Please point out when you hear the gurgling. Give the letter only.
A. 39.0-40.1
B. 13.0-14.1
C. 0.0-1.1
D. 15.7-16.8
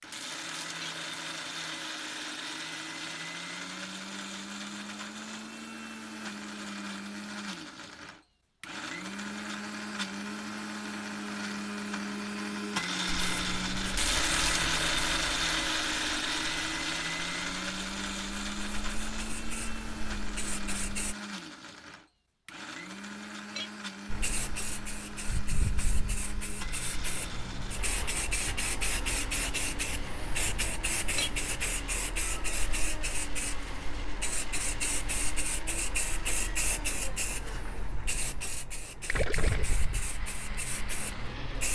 A.